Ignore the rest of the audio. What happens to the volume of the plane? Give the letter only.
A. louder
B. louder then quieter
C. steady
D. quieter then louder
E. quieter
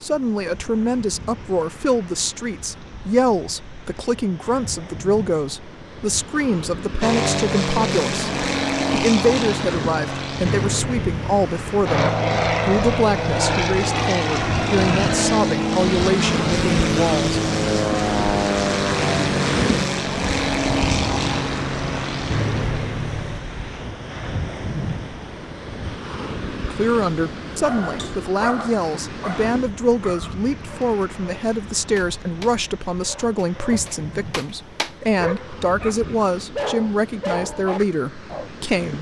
C.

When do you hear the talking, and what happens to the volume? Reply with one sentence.
You can hear the talking from 0.0 to 17.4 s, at a steady volume; and from 26.7 to 38.9 s, at a steady volume.